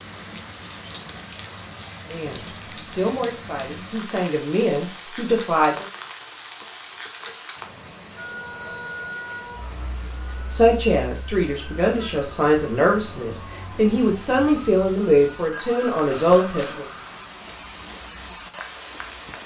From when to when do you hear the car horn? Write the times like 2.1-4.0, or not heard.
not heard.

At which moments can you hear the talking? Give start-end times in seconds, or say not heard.
2.0-5.8, 10.5-16.9.